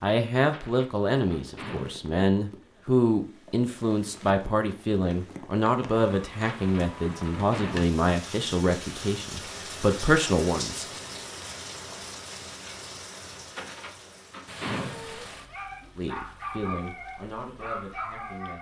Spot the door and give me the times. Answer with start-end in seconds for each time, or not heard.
0.4-2.0, 6.3-8.0, 13.4-15.3.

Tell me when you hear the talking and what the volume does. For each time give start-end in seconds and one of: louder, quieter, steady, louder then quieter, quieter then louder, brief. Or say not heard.
0.0-10.8 steady
15.9-18.5 brief.